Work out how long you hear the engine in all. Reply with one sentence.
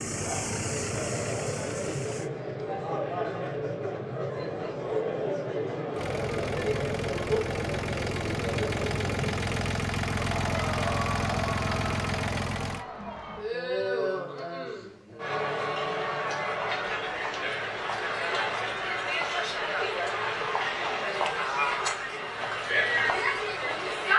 You can hear the engine for 9 seconds altogether.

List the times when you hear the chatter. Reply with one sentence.
The chatter can be heard from 0.1 to 24.1 s.